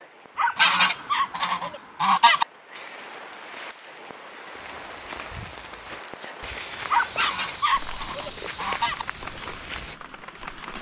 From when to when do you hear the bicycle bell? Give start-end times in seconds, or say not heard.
not heard.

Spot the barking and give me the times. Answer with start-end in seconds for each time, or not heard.
0.3-1.8, 6.8-8.3.